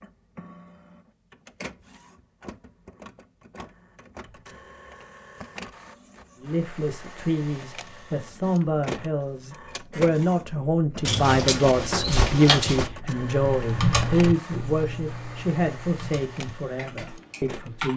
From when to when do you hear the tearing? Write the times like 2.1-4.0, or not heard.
not heard.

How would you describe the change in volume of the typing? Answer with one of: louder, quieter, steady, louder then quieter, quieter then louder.
quieter.